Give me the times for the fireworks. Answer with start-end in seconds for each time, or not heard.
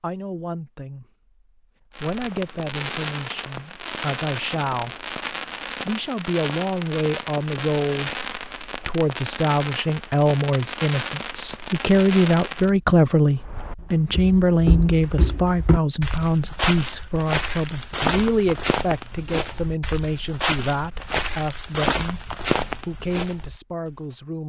1.9-12.7.